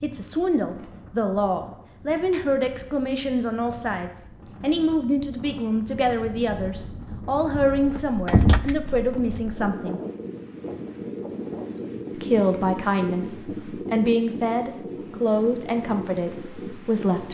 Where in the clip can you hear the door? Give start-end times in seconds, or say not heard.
8.0-9.4.